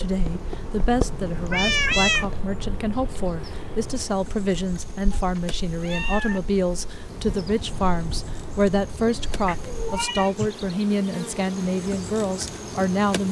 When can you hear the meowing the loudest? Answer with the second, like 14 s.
2 s.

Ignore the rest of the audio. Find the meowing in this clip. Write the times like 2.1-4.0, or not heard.
0.1-2.4, 5.1-6.4, 9.3-10.7.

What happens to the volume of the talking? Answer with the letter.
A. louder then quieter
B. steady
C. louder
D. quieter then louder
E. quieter
B.